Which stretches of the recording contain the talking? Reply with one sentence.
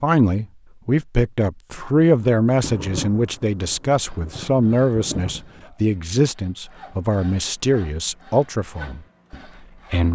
You can hear the talking from 0.0 to 10.1 s.